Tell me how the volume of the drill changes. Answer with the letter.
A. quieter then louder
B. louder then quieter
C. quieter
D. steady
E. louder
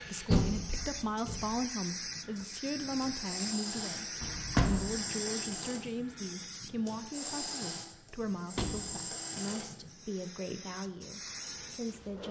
D.